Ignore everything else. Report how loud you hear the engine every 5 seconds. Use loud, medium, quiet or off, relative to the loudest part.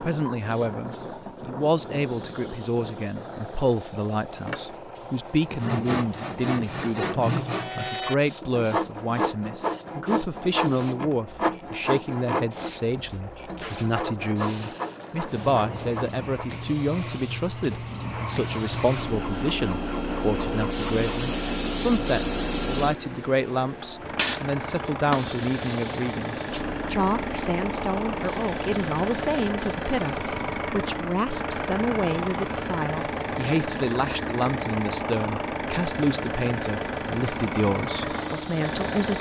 medium, quiet, quiet, medium, medium, loud, loud, loud.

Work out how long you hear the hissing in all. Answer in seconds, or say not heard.
39 s.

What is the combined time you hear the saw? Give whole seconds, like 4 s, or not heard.
11 s.